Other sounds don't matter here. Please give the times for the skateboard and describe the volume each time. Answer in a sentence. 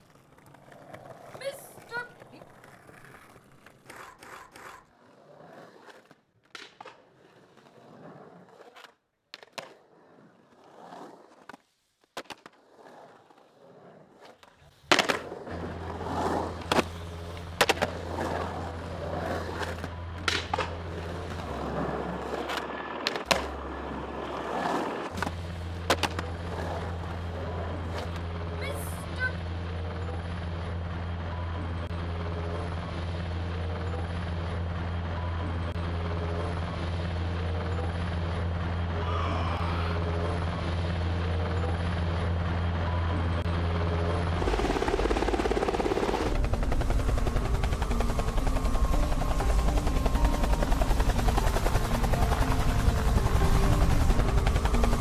The skateboard can be heard from 0.0 to 28.2 s, getting louder.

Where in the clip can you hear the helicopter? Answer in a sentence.
The helicopter can be heard from 15.5 to 54.9 s.